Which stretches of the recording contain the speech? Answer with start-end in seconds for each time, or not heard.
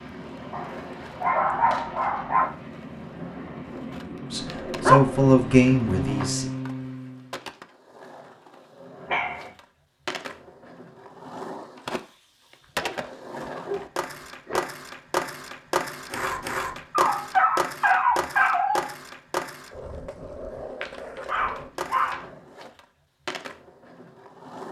4.3-6.5.